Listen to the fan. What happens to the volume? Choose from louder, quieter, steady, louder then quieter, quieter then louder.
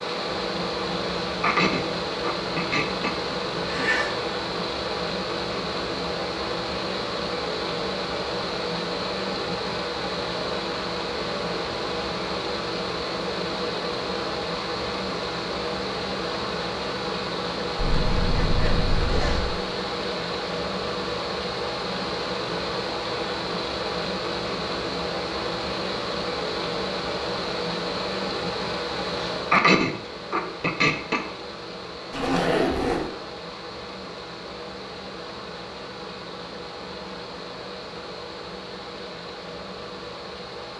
quieter.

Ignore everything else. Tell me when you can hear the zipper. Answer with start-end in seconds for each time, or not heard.
3.5-4.2, 17.8-19.6, 32.1-33.1.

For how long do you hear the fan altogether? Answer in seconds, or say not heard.
41 s.